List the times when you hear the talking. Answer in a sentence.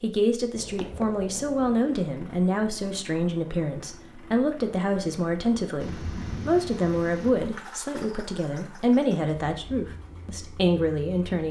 The talking can be heard from 0.0 to 11.4 s.